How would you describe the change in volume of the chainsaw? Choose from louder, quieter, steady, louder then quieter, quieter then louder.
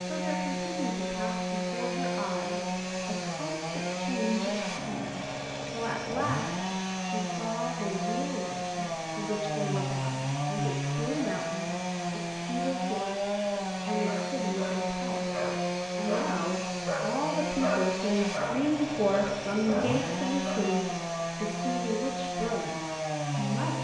steady.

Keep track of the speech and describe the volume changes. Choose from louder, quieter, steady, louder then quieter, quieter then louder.
louder.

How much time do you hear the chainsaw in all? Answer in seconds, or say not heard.
24 s.